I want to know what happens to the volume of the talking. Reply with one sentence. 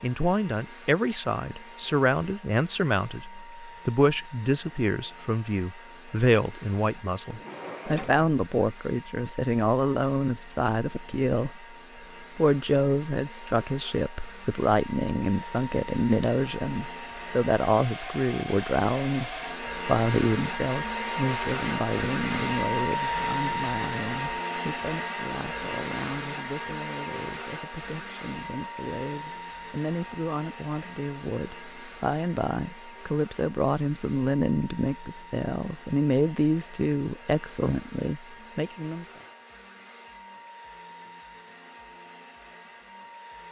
The volume of the talking goes down, then up.